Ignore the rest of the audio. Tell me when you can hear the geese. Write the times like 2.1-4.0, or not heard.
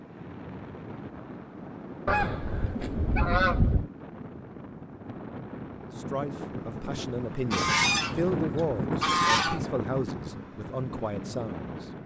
2.0-3.9, 7.5-9.6.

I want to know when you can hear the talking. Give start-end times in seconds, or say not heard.
5.8-11.7.